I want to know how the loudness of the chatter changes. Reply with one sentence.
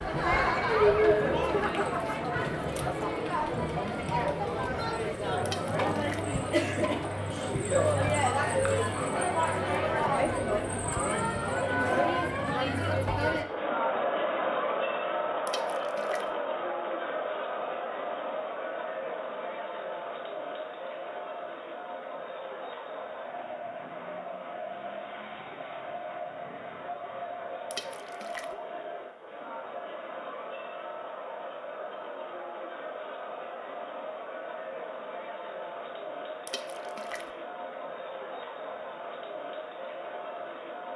The volume of the chatter goes down.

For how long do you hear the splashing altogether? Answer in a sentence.
You can hear the splashing for 3 seconds altogether.